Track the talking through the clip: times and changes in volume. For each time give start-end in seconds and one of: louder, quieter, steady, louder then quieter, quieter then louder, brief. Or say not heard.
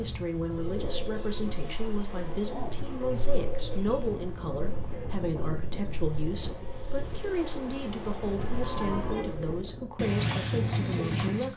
0.0-11.5 steady.